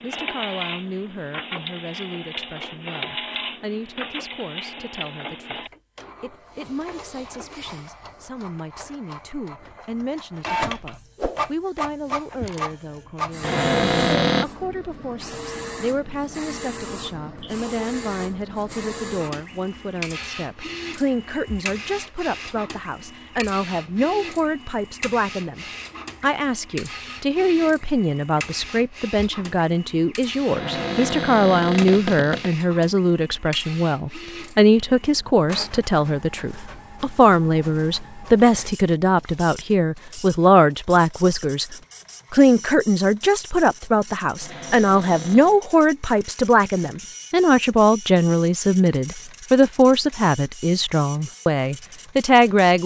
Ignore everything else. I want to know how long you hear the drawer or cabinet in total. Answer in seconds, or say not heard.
4 s.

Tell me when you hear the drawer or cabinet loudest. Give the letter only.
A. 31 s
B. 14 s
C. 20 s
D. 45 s
B.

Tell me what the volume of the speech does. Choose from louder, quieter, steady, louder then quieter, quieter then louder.
louder.